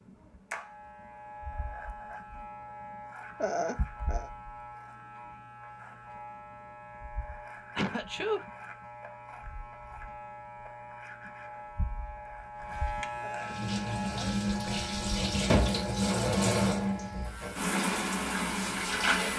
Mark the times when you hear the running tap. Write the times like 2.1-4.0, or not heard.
13.4-19.3.